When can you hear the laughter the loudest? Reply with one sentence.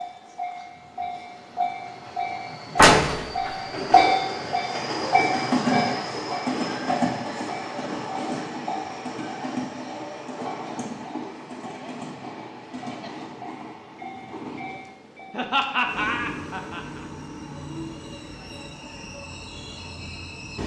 The volume of the laughter peaks at 16 seconds.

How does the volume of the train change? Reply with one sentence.
The loudness of the train goes down.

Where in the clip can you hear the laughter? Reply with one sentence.
You can hear the laughter from 15.3 to 17.1 s.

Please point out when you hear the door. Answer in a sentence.
The door can be heard from 2.8 to 4.0 s.